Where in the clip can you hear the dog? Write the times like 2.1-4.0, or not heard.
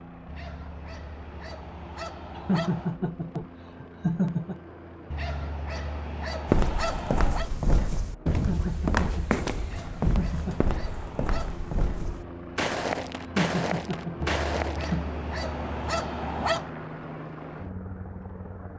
0.2-3.0, 5.1-7.5, 9.6-11.7, 14.2-16.8.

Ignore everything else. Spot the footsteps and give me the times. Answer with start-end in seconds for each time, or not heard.
6.5-14.9.